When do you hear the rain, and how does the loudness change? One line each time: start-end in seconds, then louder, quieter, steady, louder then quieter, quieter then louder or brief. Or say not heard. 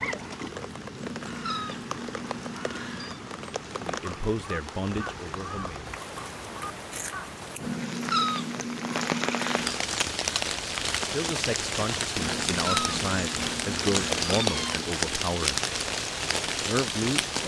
0.0-17.4 louder.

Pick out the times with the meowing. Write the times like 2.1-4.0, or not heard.
0.9-3.2, 7.6-9.8, 12.2-14.8.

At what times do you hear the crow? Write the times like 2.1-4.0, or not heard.
0.0-7.3.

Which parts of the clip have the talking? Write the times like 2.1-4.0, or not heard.
3.8-5.8, 11.1-15.6, 16.6-17.4.